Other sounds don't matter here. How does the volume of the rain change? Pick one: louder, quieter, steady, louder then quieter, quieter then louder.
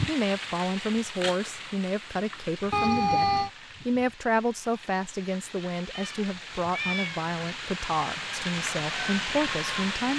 quieter then louder.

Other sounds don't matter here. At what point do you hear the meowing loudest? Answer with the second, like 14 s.
3 s.